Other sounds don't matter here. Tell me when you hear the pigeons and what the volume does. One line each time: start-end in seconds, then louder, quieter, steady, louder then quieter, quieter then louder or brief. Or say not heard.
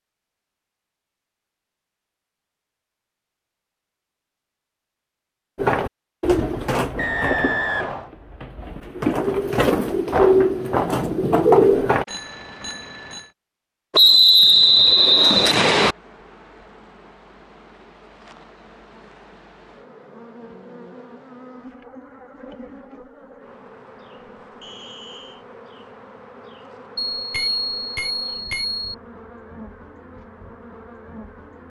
5.5-12.1 quieter then louder.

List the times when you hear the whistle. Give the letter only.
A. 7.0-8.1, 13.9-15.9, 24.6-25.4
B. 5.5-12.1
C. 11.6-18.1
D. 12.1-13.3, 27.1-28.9
A.